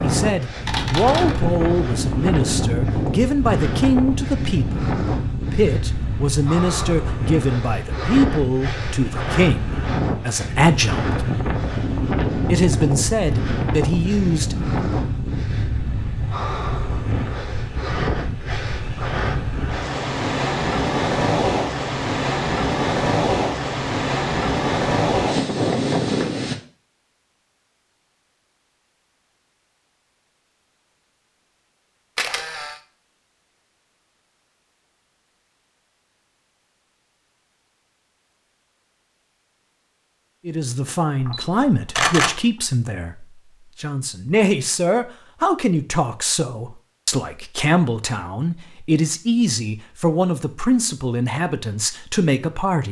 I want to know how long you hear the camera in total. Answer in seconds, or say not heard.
3 s.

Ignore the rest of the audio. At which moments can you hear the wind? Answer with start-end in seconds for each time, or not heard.
0.0-26.6.